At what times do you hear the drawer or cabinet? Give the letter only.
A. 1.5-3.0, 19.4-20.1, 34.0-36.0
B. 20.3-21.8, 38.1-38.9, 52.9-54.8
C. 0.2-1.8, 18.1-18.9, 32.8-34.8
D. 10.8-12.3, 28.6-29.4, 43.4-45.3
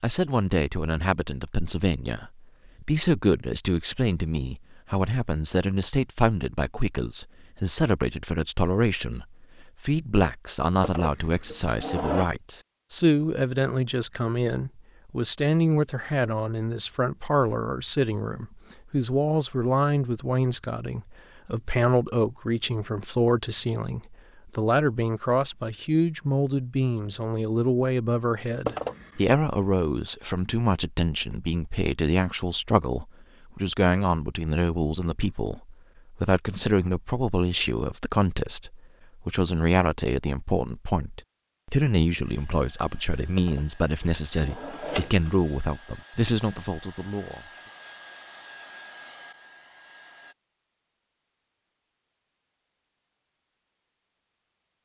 D.